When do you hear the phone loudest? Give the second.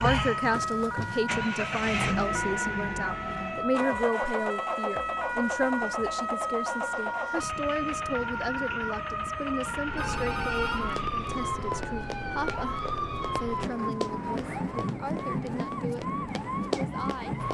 11 s.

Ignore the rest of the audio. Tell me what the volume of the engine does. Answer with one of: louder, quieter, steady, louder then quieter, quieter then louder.
quieter.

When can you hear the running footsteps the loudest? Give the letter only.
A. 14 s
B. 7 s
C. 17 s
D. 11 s
C.